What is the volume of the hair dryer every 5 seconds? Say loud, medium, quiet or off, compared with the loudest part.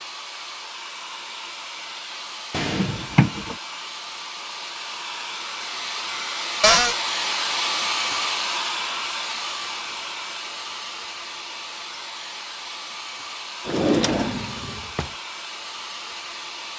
medium, loud, medium, medium.